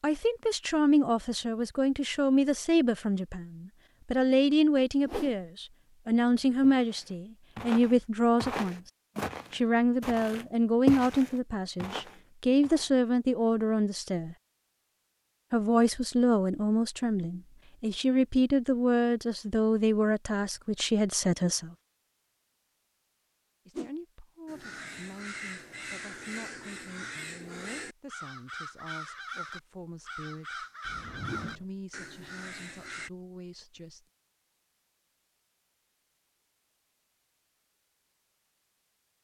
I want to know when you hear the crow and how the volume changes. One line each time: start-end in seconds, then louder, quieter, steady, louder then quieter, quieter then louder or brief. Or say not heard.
24.4-33.1 steady.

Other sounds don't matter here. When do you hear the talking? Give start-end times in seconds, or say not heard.
0.0-8.8, 9.5-14.3, 15.5-21.8, 23.6-30.6, 31.4-34.0.